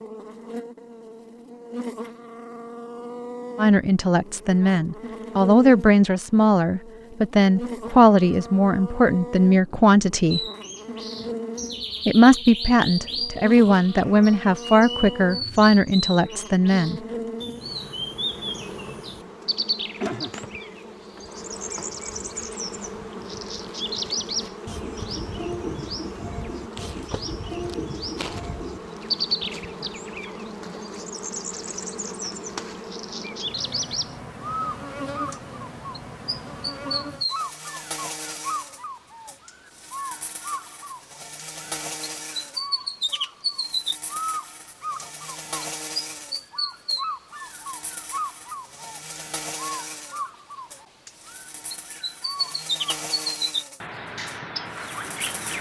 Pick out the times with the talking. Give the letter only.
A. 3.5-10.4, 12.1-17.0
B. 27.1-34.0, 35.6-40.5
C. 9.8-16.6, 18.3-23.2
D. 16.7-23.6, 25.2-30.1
A.